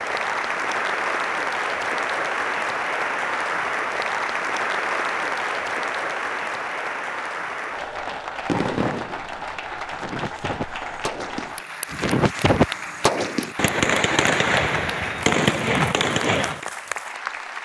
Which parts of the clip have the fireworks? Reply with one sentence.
You can hear the fireworks from 8.1 to 16.6 s.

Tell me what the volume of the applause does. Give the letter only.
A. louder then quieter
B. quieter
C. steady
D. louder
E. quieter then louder
B.